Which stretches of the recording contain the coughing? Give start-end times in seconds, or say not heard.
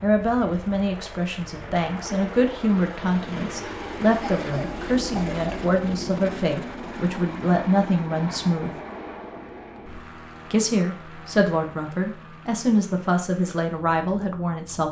4.2-5.7.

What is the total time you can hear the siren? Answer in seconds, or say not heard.
not heard.